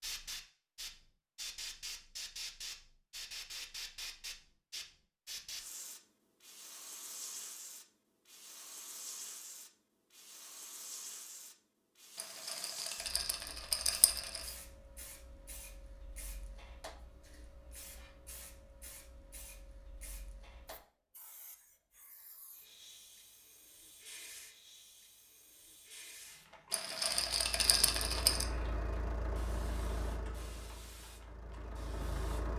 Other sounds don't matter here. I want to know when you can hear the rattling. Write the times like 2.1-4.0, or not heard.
12.2-14.5, 26.7-28.4.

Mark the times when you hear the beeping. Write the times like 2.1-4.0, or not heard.
not heard.